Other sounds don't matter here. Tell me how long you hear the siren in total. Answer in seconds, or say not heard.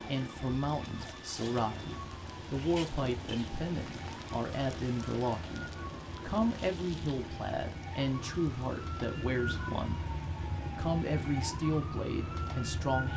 13 s.